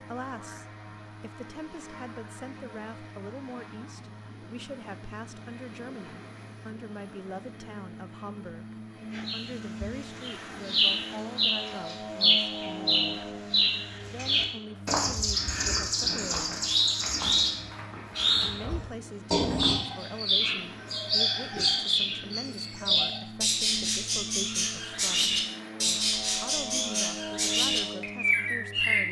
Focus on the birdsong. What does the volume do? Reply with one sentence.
The loudness of the birdsong stays about the same.